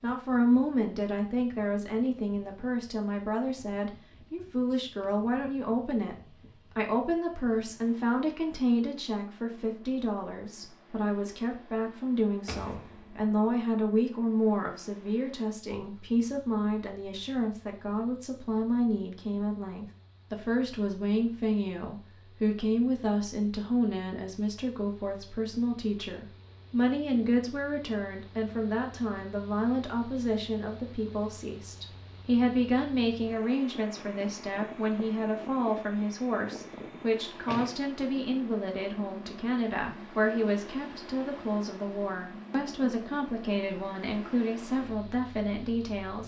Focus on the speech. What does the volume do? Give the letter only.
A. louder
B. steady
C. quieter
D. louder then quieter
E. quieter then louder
B.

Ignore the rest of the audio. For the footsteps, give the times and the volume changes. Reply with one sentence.
The footsteps can't be heard in this clip.